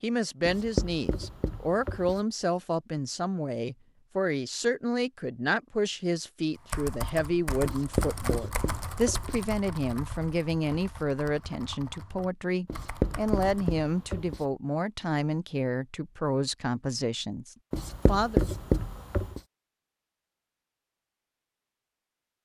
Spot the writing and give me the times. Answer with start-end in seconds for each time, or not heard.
0.5-2.2, 7.7-9.4, 12.7-14.4, 17.7-19.4.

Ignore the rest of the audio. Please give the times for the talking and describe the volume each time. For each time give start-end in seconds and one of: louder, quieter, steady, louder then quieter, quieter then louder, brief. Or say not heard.
0.0-18.4 steady.